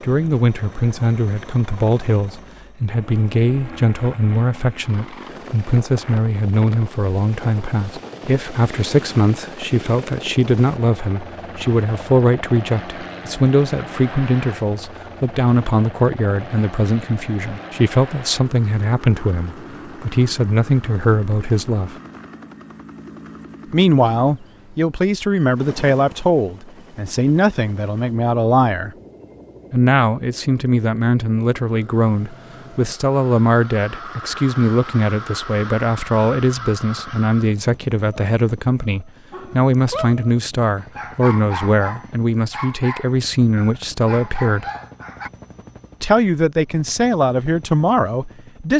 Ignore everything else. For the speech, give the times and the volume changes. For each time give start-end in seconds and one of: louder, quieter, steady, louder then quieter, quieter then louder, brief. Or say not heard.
0.0-21.9 steady
23.7-28.9 steady
29.7-44.6 steady
46.0-48.7 brief.